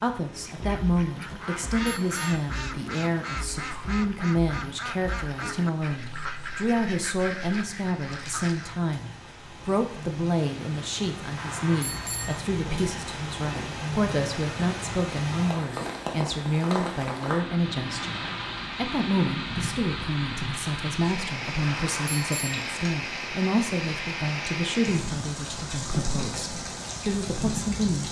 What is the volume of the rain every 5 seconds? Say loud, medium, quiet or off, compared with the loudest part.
quiet, quiet, loud, loud, loud, loud.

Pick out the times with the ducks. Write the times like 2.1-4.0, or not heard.
0.3-8.8.